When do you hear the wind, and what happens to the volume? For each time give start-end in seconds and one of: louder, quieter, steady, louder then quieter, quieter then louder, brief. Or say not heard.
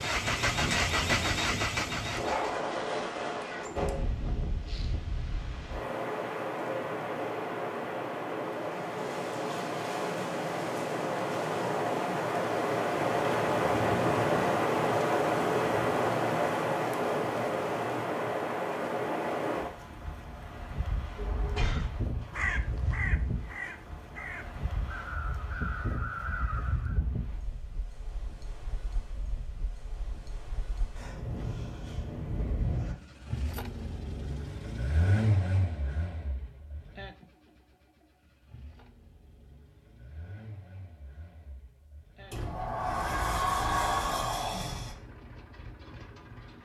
0.0-33.0 louder then quieter.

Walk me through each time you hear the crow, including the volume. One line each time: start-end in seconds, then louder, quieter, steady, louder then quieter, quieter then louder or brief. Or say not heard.
21.4-27.0 quieter then louder.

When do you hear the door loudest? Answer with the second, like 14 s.
44 s.